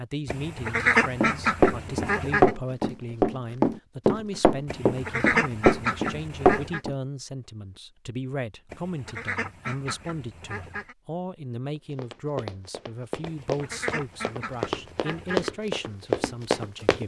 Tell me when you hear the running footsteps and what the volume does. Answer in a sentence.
The running footsteps can be heard from 1.2 to 7.0 s, getting quieter then louder; and from 11.8 to 17.0 s, getting louder.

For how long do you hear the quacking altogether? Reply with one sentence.
You can hear the quacking for 9 seconds altogether.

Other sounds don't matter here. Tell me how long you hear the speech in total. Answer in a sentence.
The speech can be heard for 17 seconds in total.